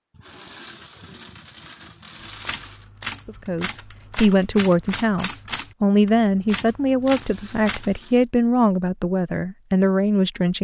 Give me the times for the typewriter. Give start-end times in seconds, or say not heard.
2.2-8.0.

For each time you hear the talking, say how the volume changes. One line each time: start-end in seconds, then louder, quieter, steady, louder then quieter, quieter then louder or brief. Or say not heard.
3.2-10.5 steady.